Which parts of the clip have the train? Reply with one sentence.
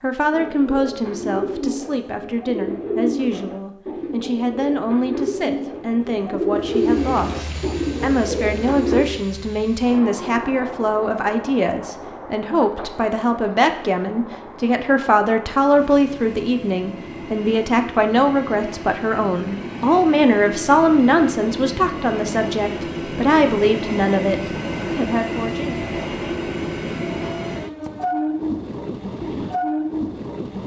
You can hear the train from 6.5 to 30.6 s.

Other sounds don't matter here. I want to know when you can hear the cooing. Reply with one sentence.
The cooing can be heard from 0.3 to 9.1 s.